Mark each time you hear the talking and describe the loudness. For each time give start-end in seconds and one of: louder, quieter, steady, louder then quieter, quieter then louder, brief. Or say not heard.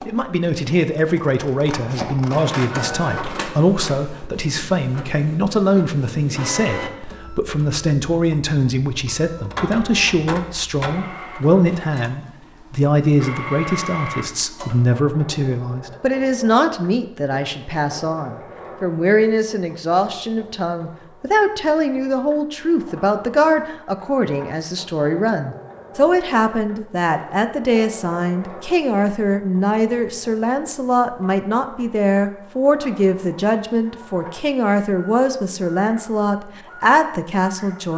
0.1-37.9 steady.